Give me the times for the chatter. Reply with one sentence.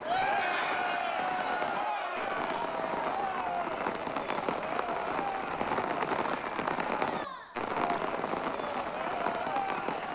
You can hear the chatter from 0.0 to 10.1 s.